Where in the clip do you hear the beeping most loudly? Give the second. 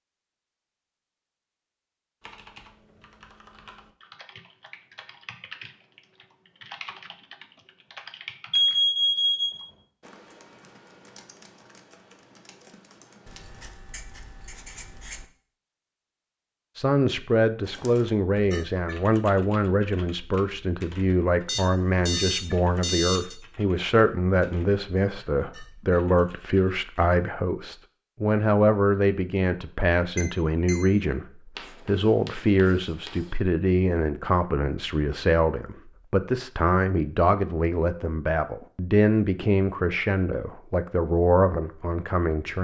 9 s.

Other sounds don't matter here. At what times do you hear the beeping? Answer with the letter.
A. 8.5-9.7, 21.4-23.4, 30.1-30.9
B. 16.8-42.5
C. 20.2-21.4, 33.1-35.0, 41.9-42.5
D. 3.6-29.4
A.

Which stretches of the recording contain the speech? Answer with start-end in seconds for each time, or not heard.
16.8-42.5.